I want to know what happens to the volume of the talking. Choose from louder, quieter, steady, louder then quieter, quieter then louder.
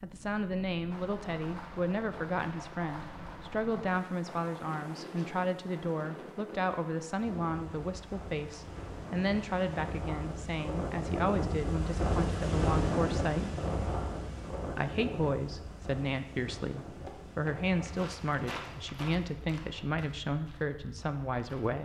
steady.